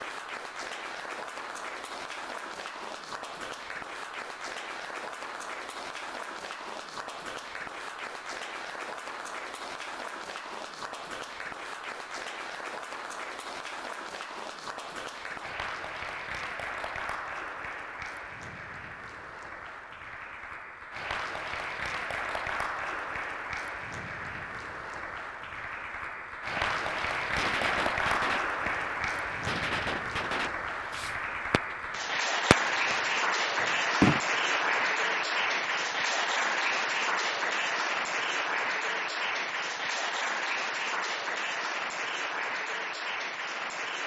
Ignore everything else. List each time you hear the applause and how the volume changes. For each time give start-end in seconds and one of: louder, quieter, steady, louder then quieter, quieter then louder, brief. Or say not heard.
0.0-44.0 louder.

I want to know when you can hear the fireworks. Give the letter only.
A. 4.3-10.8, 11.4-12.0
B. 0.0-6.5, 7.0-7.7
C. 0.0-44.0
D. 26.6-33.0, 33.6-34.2
D.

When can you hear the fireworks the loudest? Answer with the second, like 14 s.
34 s.